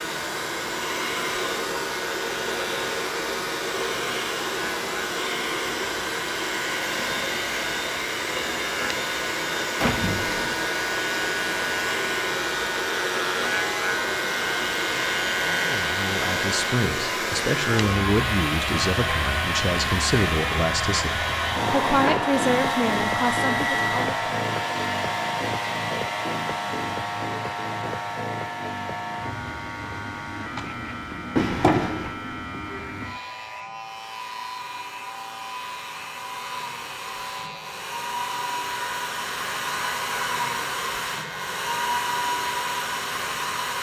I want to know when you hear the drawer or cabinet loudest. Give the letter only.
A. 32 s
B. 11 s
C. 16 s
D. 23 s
A.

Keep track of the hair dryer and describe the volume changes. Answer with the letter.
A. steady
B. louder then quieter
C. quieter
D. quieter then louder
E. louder
D.